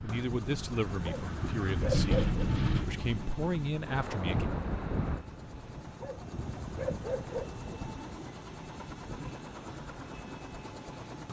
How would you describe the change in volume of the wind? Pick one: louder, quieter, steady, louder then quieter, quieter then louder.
quieter.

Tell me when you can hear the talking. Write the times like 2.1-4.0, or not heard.
0.0-4.5.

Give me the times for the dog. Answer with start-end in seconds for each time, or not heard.
0.9-2.4, 5.7-7.8.